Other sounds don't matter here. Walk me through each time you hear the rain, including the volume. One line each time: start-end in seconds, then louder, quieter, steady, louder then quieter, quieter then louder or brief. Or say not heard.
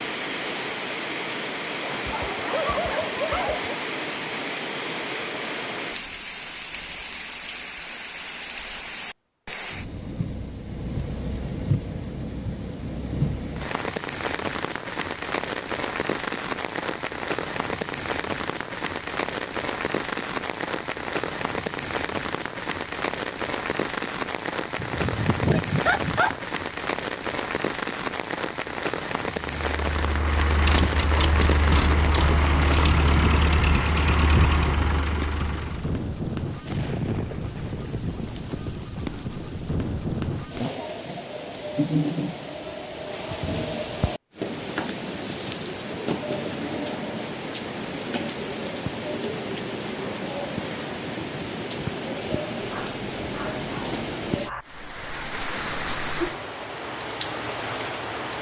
0.0-58.3 steady.